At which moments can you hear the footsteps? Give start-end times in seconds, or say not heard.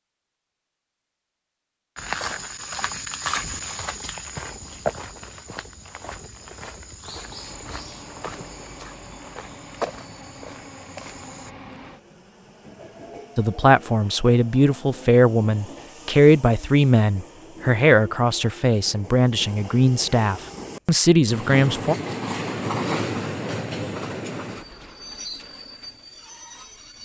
1.9-11.5.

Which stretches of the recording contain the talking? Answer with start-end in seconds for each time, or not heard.
13.3-21.9.